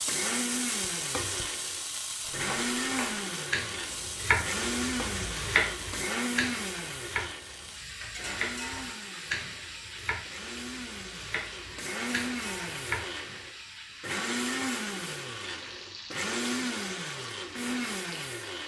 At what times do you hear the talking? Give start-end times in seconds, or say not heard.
not heard.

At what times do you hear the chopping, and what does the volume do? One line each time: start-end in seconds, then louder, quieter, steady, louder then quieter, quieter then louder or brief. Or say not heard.
2.2-13.2 quieter.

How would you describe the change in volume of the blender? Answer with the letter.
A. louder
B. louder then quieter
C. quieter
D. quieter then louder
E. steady
D.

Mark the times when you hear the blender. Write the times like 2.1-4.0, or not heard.
0.1-18.6.